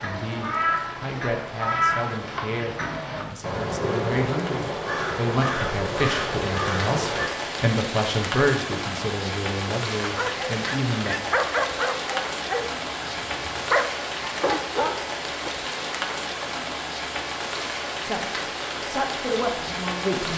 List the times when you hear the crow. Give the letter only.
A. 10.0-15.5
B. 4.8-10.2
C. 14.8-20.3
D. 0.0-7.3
D.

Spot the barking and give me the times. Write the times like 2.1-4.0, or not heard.
10.0-15.5.